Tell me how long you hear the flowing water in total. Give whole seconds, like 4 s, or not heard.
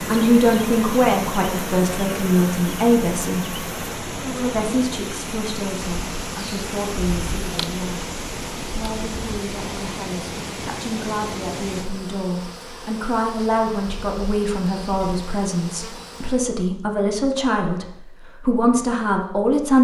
12 s.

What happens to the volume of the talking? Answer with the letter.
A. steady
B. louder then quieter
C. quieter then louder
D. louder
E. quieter
C.